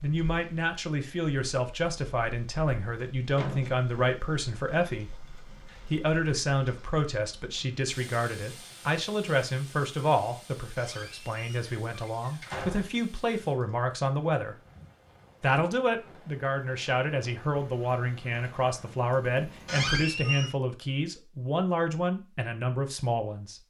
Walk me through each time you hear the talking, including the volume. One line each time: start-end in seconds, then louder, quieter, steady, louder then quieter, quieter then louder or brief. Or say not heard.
0.0-14.6 steady
15.4-23.6 steady.